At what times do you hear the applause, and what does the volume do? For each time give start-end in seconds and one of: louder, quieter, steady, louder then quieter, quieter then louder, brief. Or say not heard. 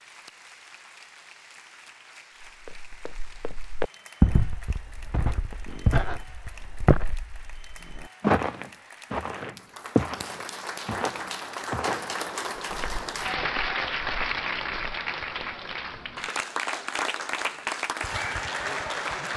0.0-19.3 louder.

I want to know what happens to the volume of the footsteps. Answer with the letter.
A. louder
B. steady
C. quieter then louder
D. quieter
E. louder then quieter
D.